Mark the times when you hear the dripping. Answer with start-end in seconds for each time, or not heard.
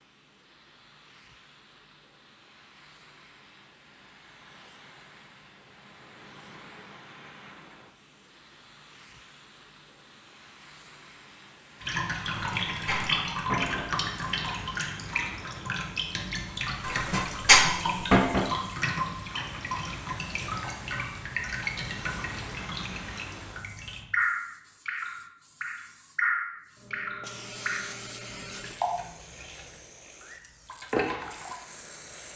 11.8-32.3.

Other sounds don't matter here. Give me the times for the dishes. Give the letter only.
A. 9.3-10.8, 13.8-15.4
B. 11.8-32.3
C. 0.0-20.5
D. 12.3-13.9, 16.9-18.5
D.